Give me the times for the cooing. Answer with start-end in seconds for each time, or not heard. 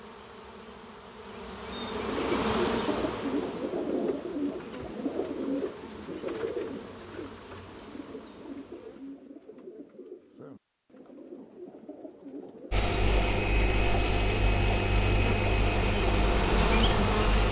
1.8-12.9.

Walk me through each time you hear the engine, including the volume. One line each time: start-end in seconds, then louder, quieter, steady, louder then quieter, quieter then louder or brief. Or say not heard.
12.7-17.4 steady.